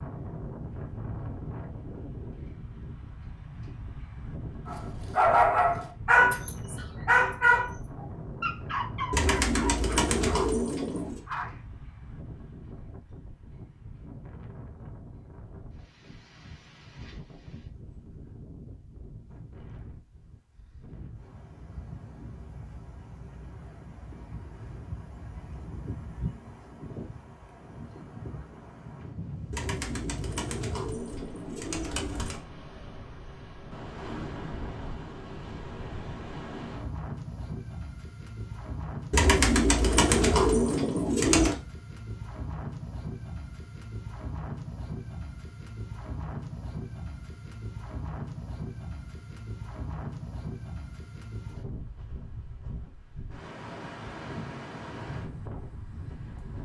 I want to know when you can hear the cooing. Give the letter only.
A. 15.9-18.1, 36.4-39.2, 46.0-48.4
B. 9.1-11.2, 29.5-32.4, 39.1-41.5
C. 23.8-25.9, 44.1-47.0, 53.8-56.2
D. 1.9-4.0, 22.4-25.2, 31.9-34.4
B.